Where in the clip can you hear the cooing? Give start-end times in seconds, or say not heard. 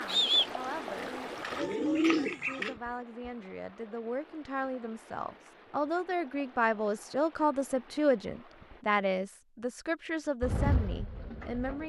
0.0-2.8, 10.4-11.8.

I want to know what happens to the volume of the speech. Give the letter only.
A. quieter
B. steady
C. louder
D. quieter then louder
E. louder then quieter
E.